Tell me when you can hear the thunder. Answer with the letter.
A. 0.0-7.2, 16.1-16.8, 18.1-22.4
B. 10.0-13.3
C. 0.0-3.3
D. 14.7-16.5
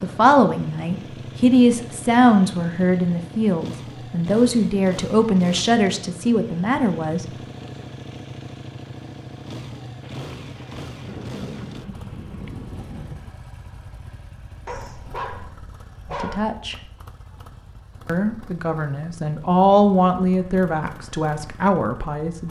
B.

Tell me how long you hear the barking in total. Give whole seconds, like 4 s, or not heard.
2 s.